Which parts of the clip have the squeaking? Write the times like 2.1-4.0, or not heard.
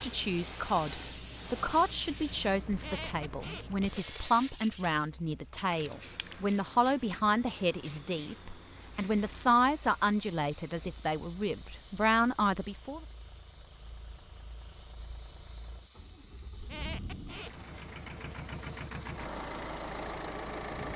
2.7-4.2, 16.6-17.6.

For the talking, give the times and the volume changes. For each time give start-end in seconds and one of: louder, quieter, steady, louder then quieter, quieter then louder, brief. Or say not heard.
0.0-13.0 steady.